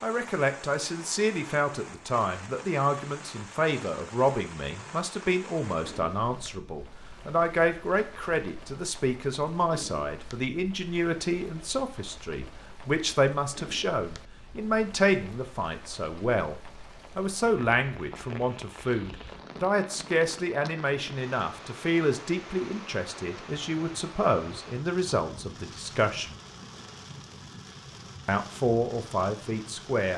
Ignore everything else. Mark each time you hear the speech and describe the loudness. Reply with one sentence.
The speech can be heard from 0.0 to 26.4 s, at a steady volume; and briefly from 28.2 to 30.1 s.